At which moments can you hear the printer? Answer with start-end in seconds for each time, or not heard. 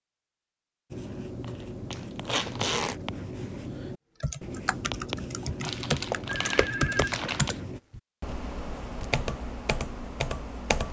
not heard.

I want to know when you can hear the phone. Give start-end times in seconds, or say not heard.
6.1-7.5.